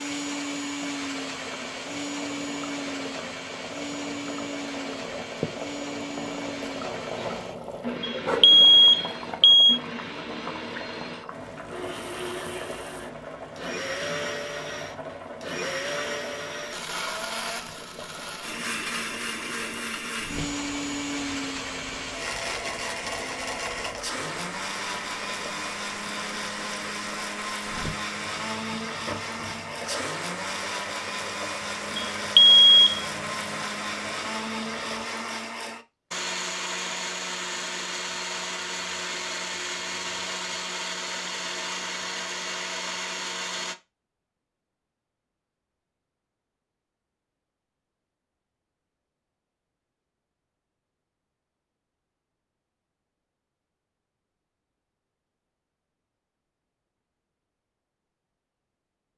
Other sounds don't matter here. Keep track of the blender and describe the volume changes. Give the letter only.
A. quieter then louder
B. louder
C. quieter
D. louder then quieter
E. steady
E.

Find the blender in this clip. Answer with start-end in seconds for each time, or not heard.
0.0-43.8.